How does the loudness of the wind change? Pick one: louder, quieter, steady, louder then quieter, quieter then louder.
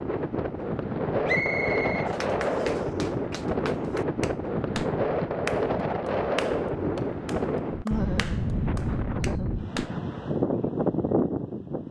steady.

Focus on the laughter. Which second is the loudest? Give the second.
8 s.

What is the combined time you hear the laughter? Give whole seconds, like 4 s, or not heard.
2 s.